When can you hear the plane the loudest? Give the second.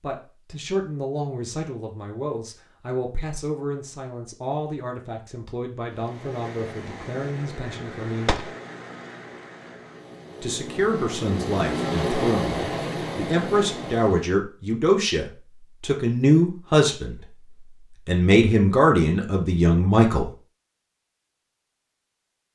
12 s.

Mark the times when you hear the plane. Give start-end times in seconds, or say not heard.
5.8-14.4.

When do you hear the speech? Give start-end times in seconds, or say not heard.
0.0-8.3, 10.4-17.2, 18.1-20.3.